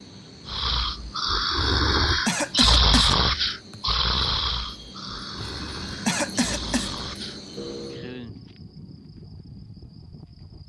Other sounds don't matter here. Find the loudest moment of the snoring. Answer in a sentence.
The loudest moment of the snoring is at 3 seconds.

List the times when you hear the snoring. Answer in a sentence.
You can hear the snoring from 0.5 to 8.3 s.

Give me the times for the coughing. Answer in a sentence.
You can hear the coughing from 1.6 to 3.8 s and from 5.4 to 7.0 s.